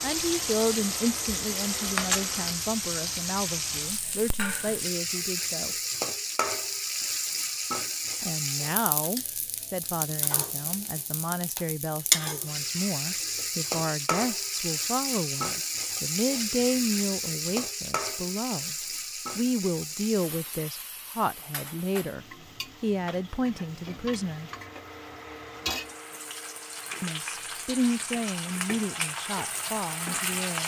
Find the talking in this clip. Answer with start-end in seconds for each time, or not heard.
0.0-5.8, 8.2-18.8, 19.4-24.5, 27.0-30.6.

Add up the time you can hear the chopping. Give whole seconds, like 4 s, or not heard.
not heard.